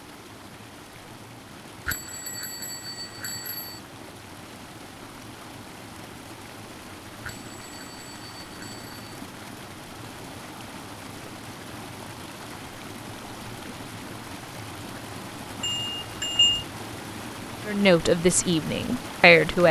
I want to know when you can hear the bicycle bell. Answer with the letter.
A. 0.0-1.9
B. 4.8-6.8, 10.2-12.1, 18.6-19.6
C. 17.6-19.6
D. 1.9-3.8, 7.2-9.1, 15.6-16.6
D.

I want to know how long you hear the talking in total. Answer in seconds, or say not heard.
2 s.